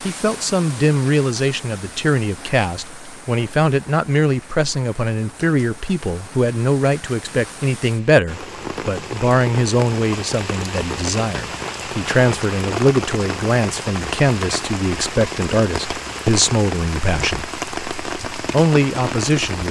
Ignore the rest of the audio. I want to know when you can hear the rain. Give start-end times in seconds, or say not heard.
0.0-19.6.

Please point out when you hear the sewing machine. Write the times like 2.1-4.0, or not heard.
not heard.